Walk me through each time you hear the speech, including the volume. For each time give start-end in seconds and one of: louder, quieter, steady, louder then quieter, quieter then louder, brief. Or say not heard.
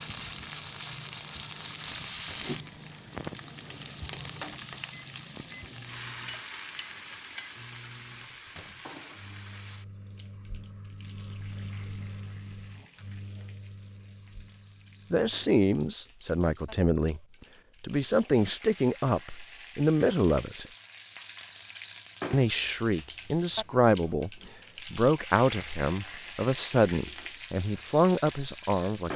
15.1-17.2 brief
17.8-20.6 brief
22.3-29.1 steady.